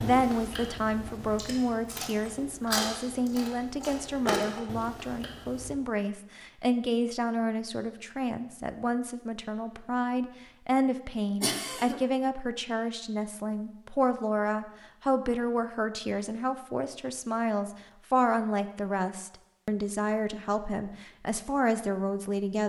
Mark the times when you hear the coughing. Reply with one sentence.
The coughing can be heard from 11.4 to 12.0 s.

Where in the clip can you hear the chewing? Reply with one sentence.
You can hear the chewing from 0.0 to 5.8 s.